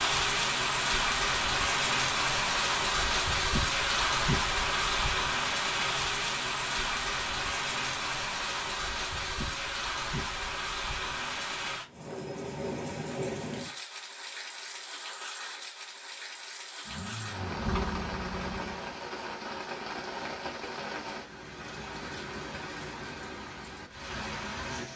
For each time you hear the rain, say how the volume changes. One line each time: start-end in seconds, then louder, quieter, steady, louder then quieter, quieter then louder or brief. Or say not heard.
0.0-24.9 quieter.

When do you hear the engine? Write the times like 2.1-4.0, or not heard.
16.9-19.0.